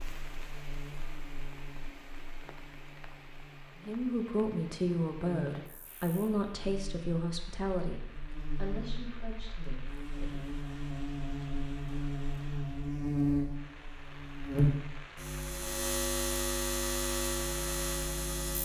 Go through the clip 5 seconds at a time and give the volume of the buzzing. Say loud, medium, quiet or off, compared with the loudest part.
quiet, quiet, loud, loud.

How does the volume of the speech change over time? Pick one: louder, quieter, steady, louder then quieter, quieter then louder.
quieter.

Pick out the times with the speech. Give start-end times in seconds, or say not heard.
3.8-10.4.